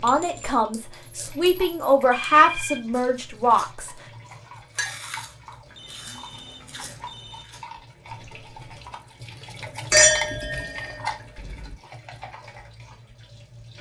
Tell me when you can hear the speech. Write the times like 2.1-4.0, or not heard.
0.0-3.9.